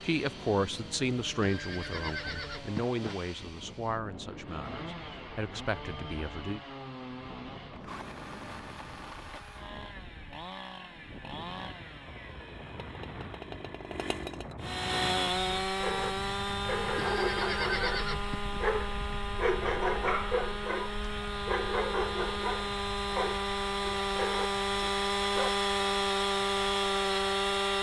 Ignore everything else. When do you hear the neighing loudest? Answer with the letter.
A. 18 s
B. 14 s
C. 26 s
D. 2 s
A.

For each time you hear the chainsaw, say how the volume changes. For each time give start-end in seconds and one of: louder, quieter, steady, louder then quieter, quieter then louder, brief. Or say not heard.
0.0-27.7 louder.